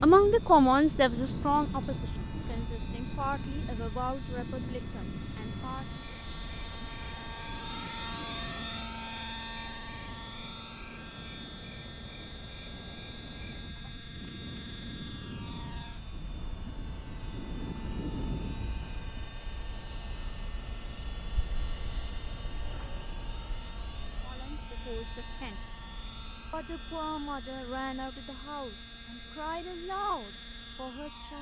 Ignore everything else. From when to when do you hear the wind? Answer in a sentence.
You can hear the wind from 0.0 to 19.4 s.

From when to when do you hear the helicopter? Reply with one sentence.
You can hear the helicopter from 0.2 to 31.3 s.